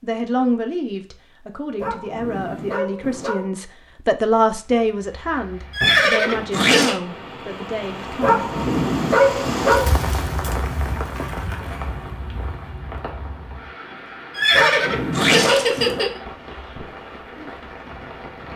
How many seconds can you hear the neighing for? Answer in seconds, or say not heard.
3 s.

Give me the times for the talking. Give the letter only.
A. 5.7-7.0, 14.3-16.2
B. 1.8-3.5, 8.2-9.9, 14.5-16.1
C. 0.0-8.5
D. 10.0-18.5
C.